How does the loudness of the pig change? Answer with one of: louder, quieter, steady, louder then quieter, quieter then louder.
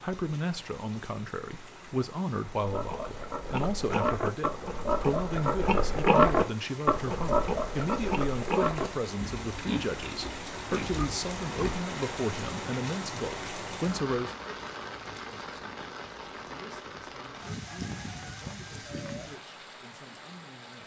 louder then quieter.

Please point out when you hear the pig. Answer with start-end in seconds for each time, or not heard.
2.6-11.8.